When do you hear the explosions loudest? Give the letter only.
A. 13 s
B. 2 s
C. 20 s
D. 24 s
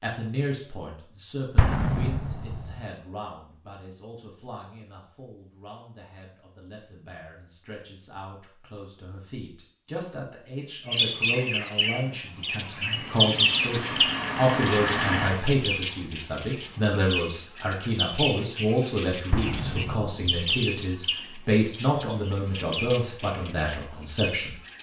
B.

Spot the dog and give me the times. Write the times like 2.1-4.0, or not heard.
not heard.